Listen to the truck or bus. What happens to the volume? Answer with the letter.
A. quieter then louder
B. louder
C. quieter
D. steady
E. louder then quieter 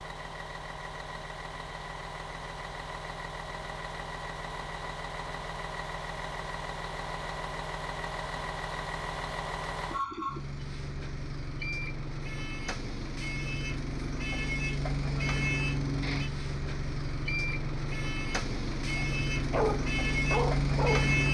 B.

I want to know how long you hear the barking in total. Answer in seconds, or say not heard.
2 s.